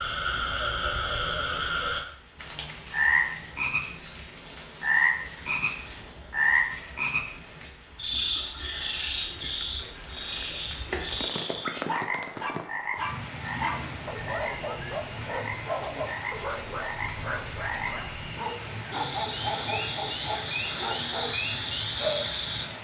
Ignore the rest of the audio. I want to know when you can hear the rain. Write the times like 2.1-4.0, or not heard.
0.0-22.7.